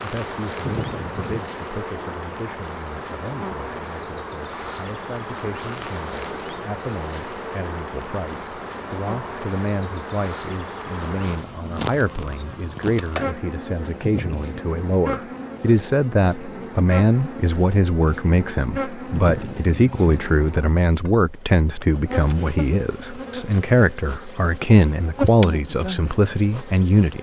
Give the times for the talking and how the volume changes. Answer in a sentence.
The talking can be heard from 0.0 to 27.1 s, getting louder.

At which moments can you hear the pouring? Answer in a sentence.
The pouring can be heard from 0.6 to 1.4 s, from 14.0 to 14.7 s and from 19.1 to 20.1 s.